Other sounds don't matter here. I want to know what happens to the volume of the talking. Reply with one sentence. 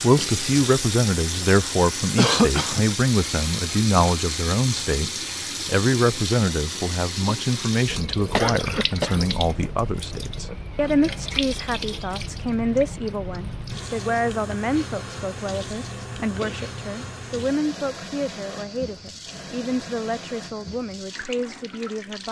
The loudness of the talking goes down.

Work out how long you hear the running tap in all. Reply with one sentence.
The running tap can be heard for 22 seconds in total.